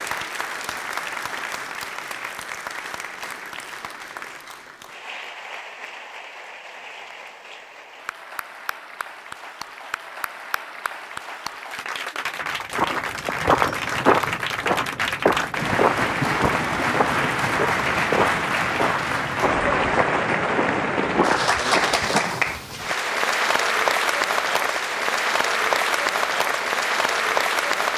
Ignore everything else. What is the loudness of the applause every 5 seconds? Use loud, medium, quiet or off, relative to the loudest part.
medium, quiet, medium, loud, loud, loud.